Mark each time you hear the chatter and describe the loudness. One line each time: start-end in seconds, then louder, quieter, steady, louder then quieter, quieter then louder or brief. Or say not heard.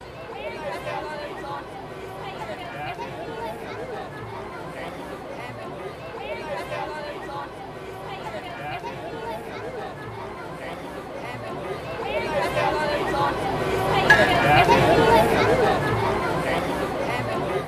0.0-17.6 louder.